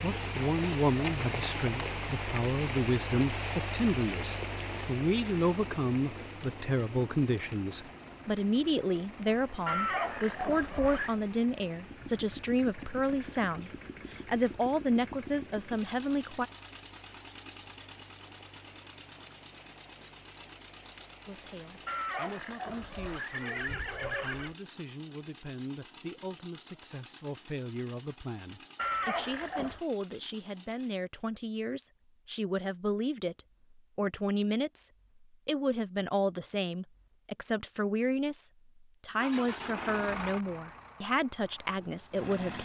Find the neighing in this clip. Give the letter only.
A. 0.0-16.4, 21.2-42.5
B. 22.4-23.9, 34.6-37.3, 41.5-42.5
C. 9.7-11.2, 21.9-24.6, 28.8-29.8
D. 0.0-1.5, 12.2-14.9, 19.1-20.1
C.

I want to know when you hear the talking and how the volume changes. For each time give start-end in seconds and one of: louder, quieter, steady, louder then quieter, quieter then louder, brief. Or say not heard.
0.0-16.4 steady
21.2-42.5 louder.